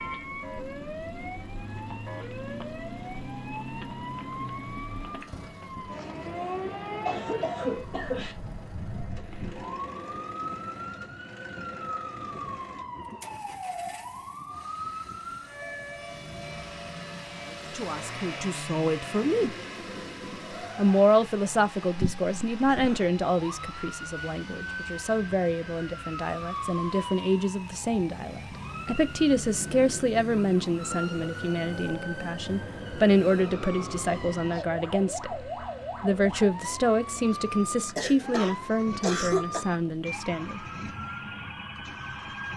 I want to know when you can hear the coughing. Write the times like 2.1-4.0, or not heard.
6.3-8.3, 38.0-39.6.